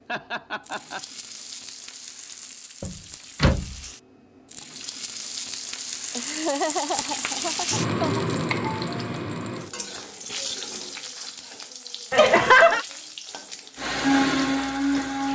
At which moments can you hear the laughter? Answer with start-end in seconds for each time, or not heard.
0.1-1.1, 6.2-8.2, 12.1-12.8.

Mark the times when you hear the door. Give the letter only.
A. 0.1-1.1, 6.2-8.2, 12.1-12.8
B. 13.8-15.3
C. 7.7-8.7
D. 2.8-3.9
D.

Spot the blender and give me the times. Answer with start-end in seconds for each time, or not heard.
13.8-15.3.